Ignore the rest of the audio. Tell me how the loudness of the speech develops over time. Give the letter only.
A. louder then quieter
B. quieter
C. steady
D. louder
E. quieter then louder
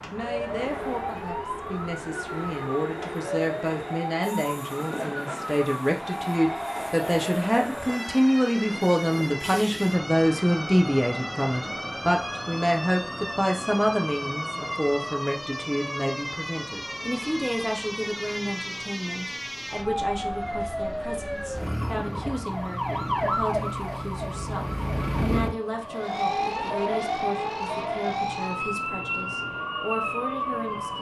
A.